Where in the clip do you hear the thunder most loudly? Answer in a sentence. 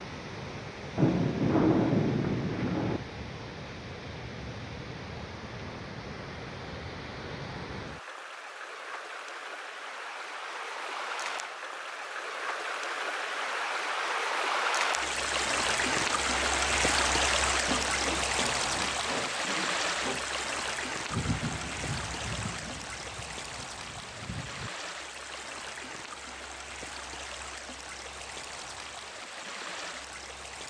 The loudest moment of the thunder is at 2 seconds.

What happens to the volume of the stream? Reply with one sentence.
The loudness of the stream goes up, then down.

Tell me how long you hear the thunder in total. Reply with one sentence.
You can hear the thunder for 6 seconds altogether.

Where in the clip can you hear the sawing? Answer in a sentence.
The sawing can be heard from 17.6 to 20.2 s.